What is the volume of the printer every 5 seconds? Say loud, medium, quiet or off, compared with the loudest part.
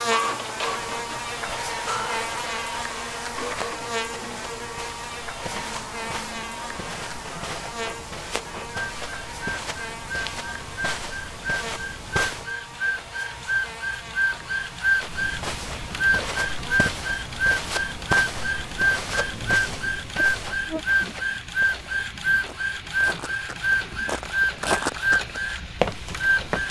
medium, quiet, loud, loud, loud, loud.